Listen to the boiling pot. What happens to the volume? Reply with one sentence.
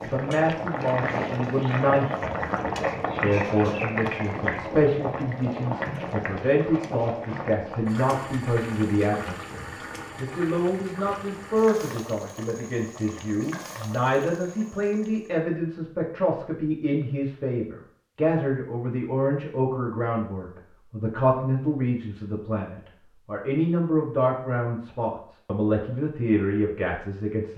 The loudness of the boiling pot goes down.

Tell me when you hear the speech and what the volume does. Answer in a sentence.
The speech can be heard from 0.0 to 27.5 s, at a steady volume.